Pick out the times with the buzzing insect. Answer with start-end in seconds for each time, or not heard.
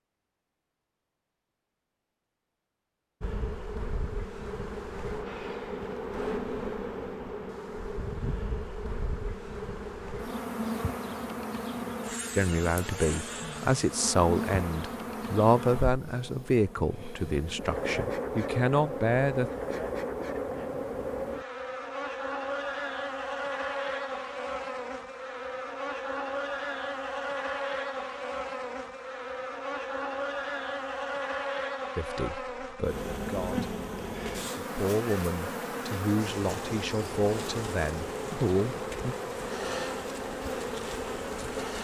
3.2-41.7.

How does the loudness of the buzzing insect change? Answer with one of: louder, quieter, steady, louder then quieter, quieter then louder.
steady.